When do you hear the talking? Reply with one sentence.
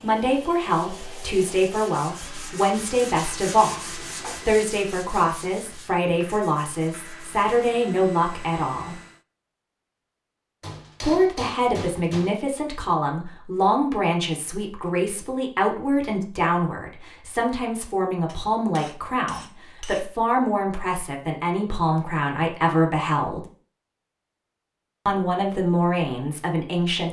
The talking can be heard from 0.0 to 9.0 s, from 11.0 to 23.4 s and from 25.1 to 27.0 s.